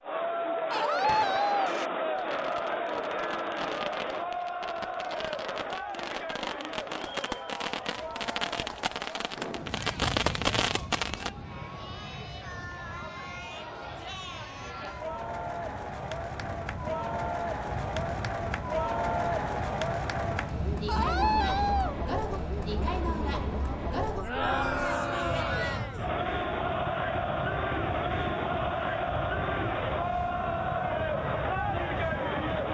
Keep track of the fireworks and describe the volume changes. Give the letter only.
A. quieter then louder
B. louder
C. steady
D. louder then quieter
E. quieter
B.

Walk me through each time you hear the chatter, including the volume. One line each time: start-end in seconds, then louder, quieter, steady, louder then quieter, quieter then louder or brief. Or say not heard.
0.0-32.7 quieter then louder.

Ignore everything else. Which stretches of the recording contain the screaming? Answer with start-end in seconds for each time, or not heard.
0.7-1.8, 20.9-21.9.